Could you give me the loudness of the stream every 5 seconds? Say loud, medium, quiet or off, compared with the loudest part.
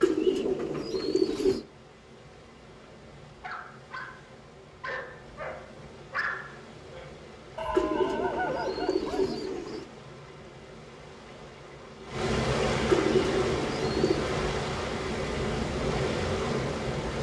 quiet, quiet, loud, loud.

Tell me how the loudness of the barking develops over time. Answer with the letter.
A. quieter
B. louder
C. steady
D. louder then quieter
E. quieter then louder
B.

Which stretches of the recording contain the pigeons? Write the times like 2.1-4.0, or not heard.
0.0-1.6, 7.7-9.8, 12.8-14.3.